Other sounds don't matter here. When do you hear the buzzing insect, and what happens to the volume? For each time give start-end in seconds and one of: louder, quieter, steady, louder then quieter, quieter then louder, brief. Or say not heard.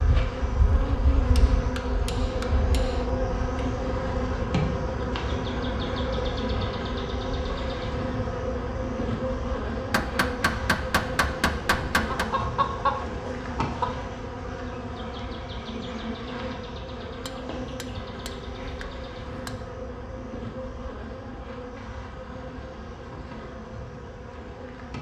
0.0-24.9 quieter.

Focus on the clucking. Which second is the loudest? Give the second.
13 s.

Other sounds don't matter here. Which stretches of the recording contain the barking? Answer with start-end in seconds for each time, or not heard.
not heard.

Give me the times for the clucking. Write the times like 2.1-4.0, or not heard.
12.1-14.0.